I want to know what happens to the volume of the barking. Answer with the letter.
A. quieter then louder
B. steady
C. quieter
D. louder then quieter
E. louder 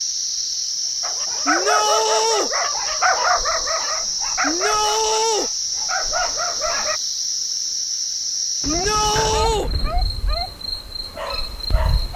C.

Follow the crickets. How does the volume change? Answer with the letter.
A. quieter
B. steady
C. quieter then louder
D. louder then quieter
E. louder
A.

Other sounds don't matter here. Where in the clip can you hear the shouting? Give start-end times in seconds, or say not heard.
1.4-2.5, 4.4-5.5, 8.7-9.7.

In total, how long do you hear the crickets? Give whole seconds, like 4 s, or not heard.
12 s.